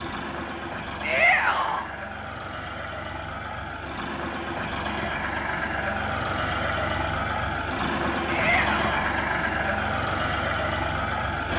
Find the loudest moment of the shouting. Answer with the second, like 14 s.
1 s.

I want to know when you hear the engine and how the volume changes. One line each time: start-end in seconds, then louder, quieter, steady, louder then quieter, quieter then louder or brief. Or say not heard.
0.0-11.5 louder.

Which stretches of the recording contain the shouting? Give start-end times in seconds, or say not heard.
1.0-1.9, 8.2-9.1.